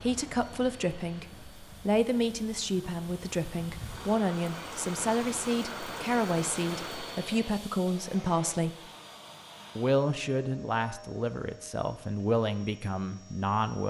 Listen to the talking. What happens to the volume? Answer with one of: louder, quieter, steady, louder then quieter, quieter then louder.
steady.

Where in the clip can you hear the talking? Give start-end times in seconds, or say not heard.
0.0-8.9, 9.8-13.8.